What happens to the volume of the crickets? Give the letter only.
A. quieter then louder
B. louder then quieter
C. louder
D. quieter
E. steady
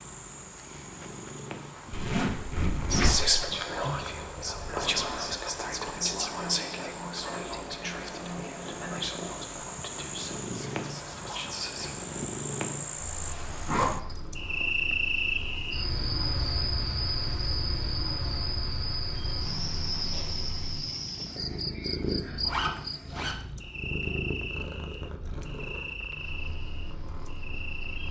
B.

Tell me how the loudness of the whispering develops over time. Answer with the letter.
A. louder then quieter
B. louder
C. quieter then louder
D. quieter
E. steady
D.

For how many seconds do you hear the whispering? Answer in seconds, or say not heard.
9 s.